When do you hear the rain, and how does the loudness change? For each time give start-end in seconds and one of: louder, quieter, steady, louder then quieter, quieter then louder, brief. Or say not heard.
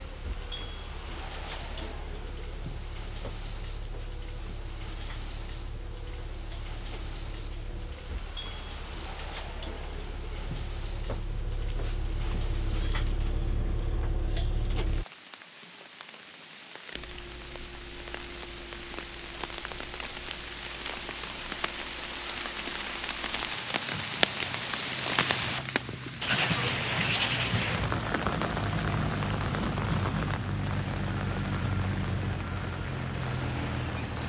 0.0-34.2 louder.